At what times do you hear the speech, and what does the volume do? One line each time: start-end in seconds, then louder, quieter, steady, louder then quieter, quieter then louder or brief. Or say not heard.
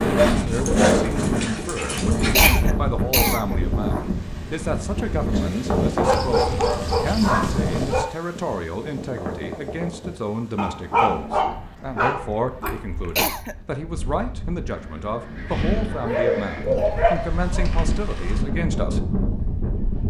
0.2-19.0 steady.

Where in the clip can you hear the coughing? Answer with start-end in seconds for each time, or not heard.
2.4-3.5, 13.2-13.6.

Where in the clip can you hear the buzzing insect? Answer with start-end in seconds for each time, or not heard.
not heard.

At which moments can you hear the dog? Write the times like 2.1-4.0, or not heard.
0.1-2.6, 6.0-8.1, 10.6-12.8, 15.9-17.6.